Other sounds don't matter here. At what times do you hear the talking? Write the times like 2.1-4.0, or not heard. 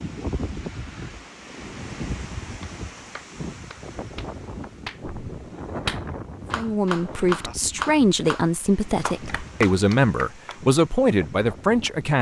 6.5-12.1.